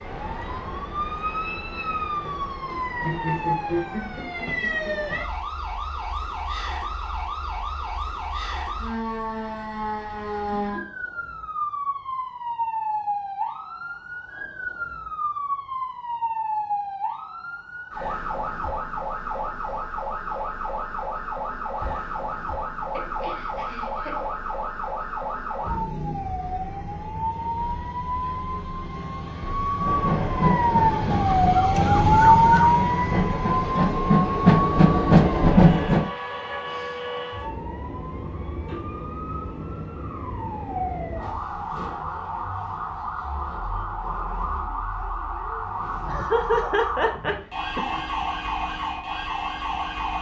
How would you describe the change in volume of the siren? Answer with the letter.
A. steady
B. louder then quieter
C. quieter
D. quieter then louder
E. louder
B.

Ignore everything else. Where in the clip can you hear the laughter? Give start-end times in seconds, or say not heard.
3.0-5.0, 22.9-24.3, 46.0-48.0.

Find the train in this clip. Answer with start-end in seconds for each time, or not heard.
29.8-36.0.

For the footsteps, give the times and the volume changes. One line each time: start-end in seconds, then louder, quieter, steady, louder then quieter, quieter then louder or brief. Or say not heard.
not heard.